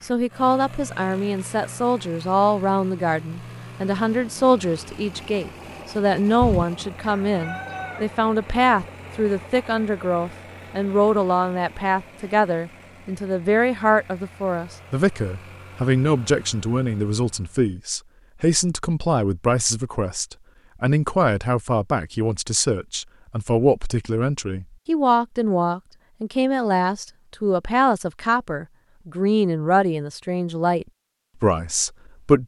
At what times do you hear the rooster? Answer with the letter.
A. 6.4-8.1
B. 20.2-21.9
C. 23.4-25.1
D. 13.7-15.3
A.